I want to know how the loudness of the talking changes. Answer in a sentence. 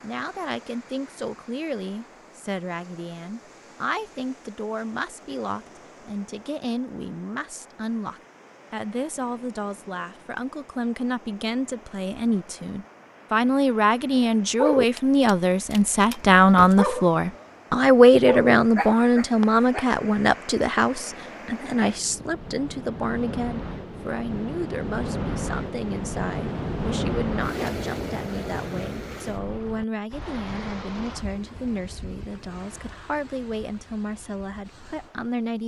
The volume of the talking goes up, then down.